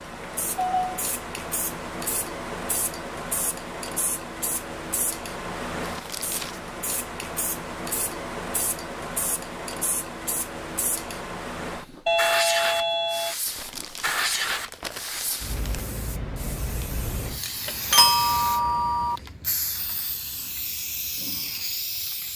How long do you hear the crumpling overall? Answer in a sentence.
You can hear the crumpling for 3 seconds altogether.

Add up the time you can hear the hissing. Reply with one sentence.
The hissing can be heard for 22 seconds in total.